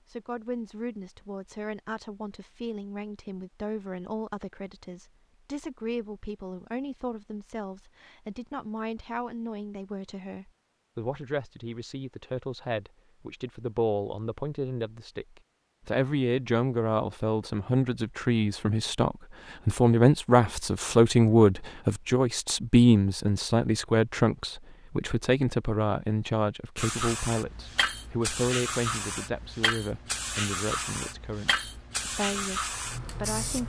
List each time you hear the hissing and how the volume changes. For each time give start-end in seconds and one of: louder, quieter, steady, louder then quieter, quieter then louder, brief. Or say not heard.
26.8-33.6 steady.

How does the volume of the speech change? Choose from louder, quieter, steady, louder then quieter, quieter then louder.
louder then quieter.